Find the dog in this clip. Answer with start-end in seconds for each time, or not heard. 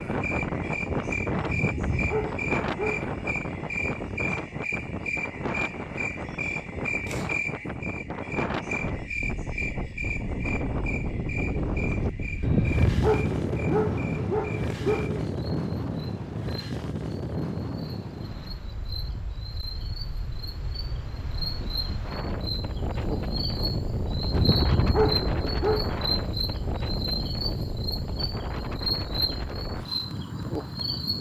1.4-3.0, 12.4-15.2, 24.3-25.9.